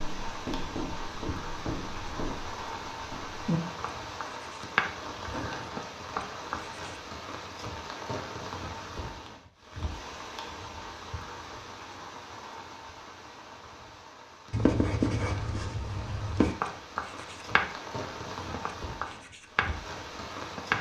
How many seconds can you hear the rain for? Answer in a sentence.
You can hear the rain for 21 seconds altogether.